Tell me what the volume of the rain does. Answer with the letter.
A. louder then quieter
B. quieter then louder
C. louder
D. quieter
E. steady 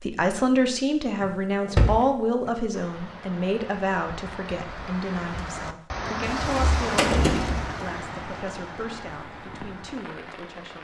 A.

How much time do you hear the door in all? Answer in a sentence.
The door can be heard for 3 seconds in total.